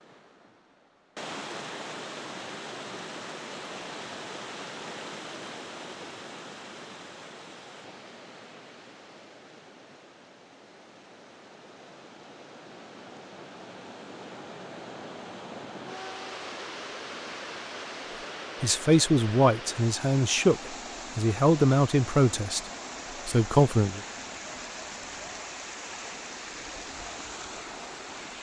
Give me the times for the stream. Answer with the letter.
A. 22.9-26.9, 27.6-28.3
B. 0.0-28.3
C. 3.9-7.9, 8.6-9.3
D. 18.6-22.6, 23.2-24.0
B.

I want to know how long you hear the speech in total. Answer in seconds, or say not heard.
5 s.